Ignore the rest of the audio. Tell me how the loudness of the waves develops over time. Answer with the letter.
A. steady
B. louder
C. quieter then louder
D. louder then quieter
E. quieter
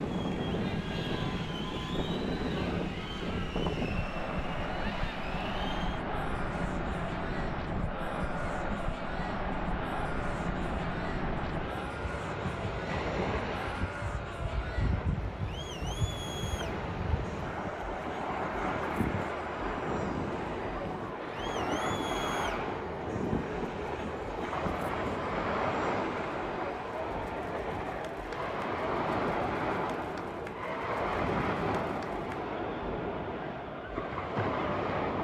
A.